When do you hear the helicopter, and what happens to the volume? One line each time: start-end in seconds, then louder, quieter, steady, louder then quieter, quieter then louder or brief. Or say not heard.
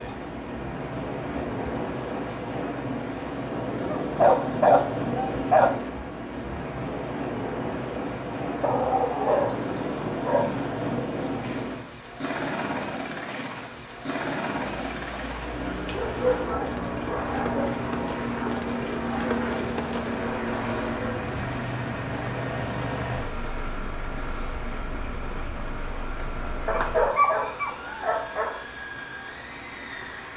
0.0-30.3 quieter.